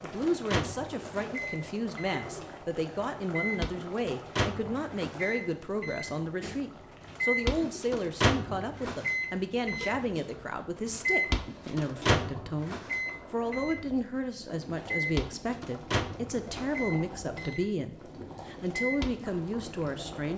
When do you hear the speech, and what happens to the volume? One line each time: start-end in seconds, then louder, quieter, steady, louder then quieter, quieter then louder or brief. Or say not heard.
0.0-20.3 steady.